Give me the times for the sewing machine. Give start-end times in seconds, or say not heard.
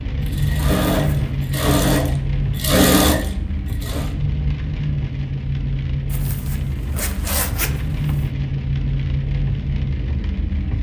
0.2-4.1.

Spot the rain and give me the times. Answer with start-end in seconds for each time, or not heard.
0.0-10.7.